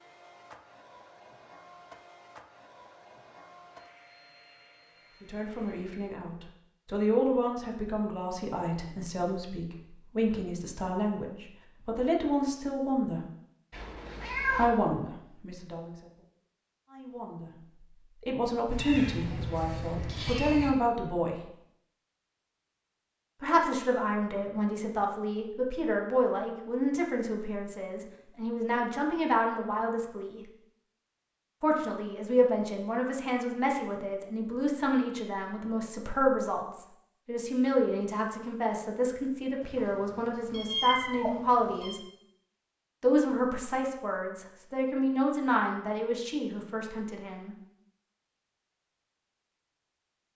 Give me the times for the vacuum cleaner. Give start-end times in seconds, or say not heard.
0.0-6.0.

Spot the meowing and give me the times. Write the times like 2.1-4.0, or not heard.
13.7-14.7, 18.7-20.7, 39.6-42.0.